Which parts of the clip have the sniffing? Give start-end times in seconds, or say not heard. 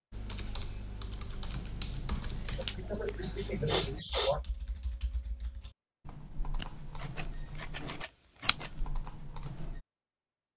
2.5-4.4.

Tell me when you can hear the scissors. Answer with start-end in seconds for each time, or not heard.
1.5-2.8, 6.5-8.7.